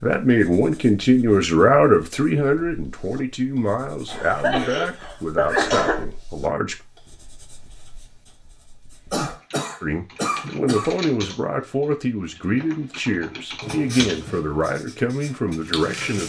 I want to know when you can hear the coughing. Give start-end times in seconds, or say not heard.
4.0-6.0, 9.1-10.9.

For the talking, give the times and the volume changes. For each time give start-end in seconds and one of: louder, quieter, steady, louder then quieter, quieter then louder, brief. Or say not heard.
0.0-6.8 quieter
9.8-16.2 steady.